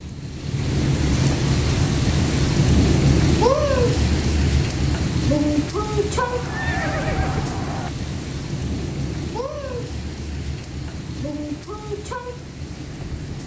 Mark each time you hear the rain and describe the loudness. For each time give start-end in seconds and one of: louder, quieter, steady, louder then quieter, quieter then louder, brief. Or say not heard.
0.0-13.4 quieter.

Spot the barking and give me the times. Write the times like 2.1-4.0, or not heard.
not heard.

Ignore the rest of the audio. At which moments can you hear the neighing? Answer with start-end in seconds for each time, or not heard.
6.2-7.9.